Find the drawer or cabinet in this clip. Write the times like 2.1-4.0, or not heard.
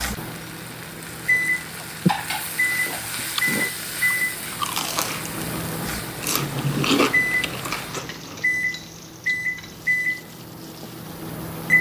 not heard.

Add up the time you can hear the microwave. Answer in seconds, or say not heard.
12 s.